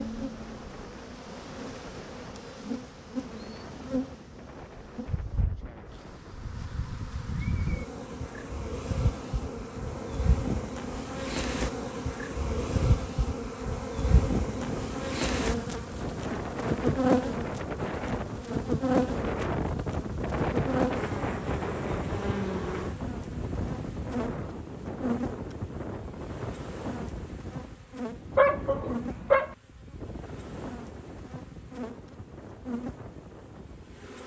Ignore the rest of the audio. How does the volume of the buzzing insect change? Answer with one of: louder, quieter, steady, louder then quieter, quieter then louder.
louder then quieter.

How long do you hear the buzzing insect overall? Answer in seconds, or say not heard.
34 s.